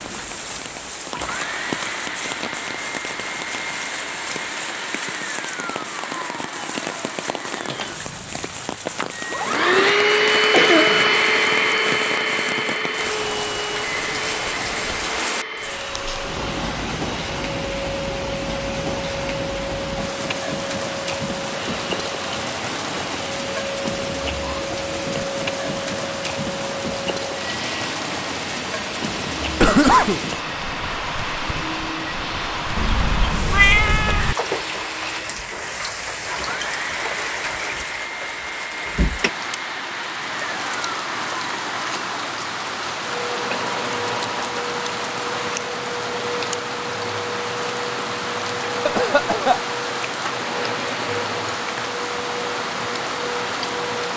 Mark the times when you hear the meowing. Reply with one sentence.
You can hear the meowing from 32.8 to 34.4 s.